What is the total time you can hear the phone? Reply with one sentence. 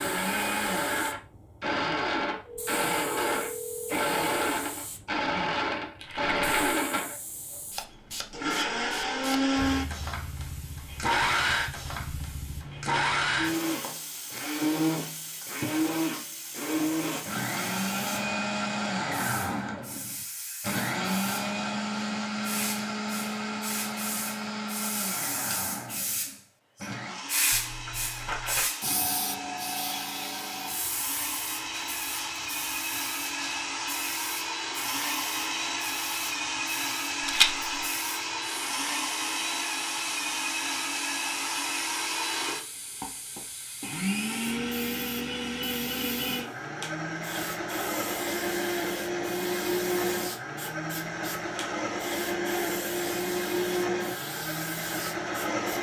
You can hear the phone for 2 seconds altogether.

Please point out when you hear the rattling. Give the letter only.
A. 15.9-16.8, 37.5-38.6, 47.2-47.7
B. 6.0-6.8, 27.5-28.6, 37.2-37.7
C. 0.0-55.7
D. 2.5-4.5
B.